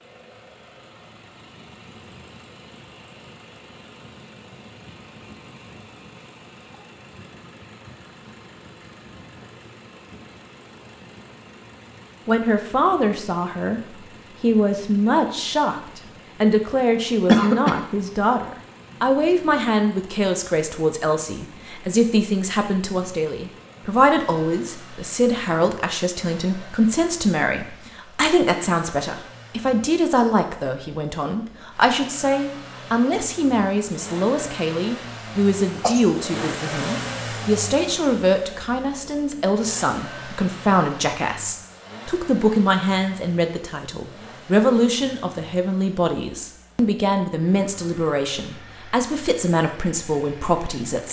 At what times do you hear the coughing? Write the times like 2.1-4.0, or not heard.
17.2-17.8, 35.4-36.0.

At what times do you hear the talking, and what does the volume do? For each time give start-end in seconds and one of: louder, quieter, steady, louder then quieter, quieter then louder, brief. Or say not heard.
12.2-13.8 brief
14.4-51.0 steady.